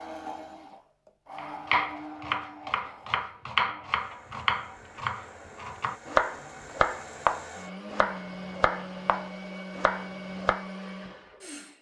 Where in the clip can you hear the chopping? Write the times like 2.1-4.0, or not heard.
1.4-10.7.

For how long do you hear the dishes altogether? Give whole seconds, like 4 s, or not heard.
not heard.